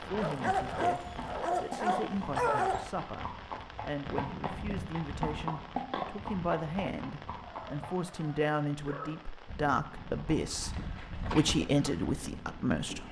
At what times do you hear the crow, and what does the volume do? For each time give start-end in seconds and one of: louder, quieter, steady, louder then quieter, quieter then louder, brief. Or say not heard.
not heard.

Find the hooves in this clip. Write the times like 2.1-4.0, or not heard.
0.0-7.9, 9.4-13.0.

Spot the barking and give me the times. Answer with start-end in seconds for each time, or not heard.
0.1-2.9, 7.3-9.2.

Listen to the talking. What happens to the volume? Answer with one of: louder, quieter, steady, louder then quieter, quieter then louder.
louder.